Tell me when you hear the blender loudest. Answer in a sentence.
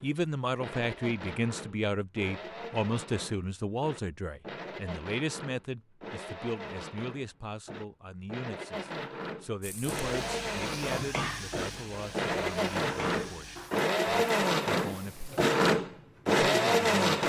The loudest moment of the blender is at 17 seconds.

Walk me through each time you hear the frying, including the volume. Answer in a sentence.
You can hear the frying from 9.6 to 15.6 s, getting quieter.